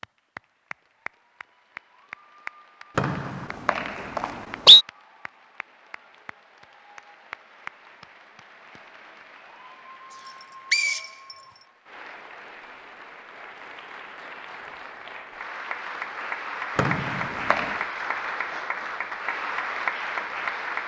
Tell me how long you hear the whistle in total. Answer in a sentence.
You can hear the whistle for 4 seconds altogether.